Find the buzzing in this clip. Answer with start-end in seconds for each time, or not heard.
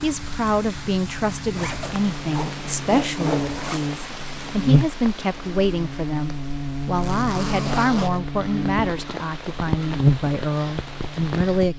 0.1-11.7.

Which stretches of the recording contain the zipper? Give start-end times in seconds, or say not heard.
1.5-4.0, 7.0-8.2.